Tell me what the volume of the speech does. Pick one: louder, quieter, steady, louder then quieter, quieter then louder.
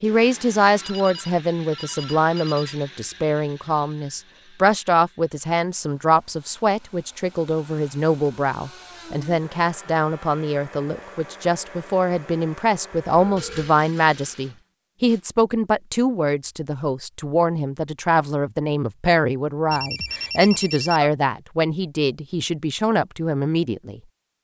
steady.